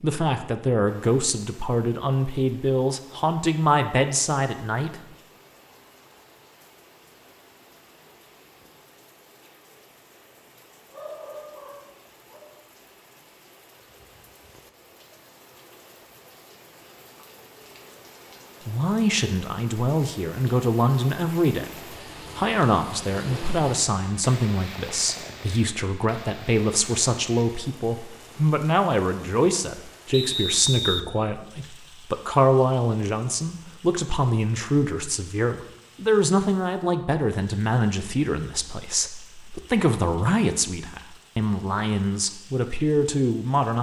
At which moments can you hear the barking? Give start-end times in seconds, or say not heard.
10.9-12.4.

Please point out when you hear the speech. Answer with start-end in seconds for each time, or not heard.
0.0-5.0, 18.6-43.7.